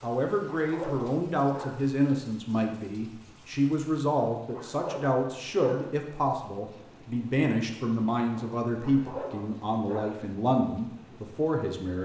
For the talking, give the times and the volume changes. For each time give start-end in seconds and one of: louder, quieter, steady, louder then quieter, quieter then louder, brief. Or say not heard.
0.0-11.9 steady.